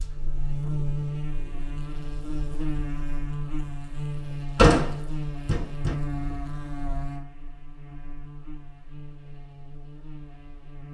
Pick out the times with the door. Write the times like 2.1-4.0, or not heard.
4.5-6.0.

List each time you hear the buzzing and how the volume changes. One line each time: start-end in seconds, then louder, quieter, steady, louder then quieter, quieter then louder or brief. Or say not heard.
0.0-10.8 quieter.